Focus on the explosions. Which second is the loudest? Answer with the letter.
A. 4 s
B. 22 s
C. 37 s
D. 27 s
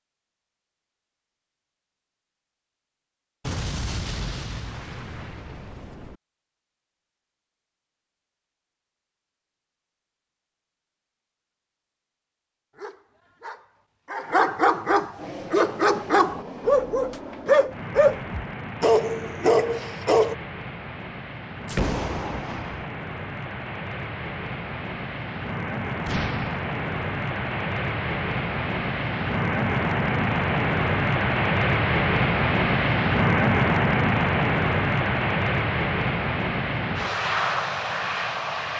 B.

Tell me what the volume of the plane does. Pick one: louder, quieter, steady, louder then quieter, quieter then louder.
louder.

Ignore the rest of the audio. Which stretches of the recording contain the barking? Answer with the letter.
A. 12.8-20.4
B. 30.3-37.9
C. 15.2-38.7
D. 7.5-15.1
A.